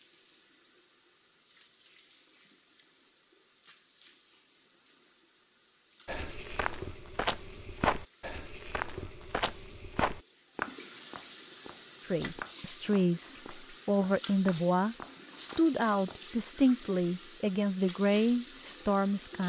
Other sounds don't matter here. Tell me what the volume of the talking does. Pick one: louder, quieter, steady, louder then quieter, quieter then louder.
steady.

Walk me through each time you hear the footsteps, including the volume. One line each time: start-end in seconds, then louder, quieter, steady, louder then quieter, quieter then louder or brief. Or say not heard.
6.0-16.2 quieter.